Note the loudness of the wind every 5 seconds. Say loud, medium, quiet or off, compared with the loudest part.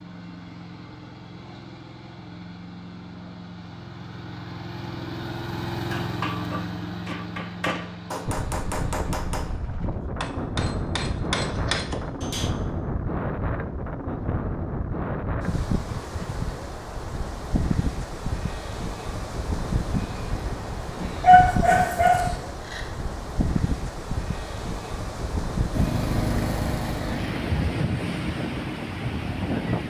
off, medium, loud, loud, loud, loud.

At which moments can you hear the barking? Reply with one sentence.
The barking can be heard from 21.2 to 22.8 s.